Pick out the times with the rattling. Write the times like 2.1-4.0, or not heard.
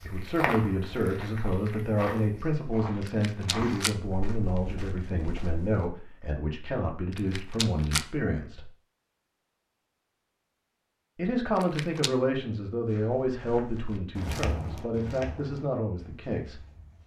3.0-4.0, 7.1-8.1, 11.6-12.1.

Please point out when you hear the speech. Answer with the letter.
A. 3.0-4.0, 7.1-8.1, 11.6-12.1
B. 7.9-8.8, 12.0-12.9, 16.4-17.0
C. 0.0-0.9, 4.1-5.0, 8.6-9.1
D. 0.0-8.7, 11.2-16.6
D.